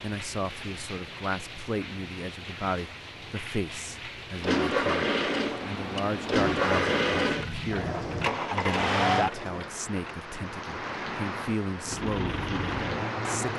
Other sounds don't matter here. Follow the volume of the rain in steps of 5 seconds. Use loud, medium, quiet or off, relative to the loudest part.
medium, loud, loud.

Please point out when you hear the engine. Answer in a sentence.
You can hear the engine from 4.4 to 10.2 s and from 11.8 to 13.5 s.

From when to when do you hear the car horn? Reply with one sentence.
The car horn can be heard from 6.2 to 8.3 s.